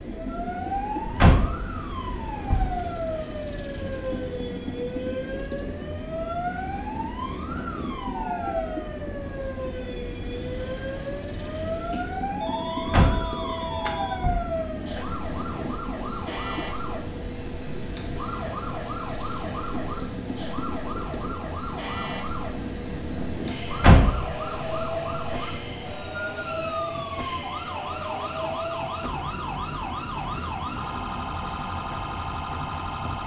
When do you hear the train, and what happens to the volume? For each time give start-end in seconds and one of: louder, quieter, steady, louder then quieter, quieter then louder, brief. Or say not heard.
0.0-33.2 steady.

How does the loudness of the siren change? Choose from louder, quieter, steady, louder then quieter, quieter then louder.
steady.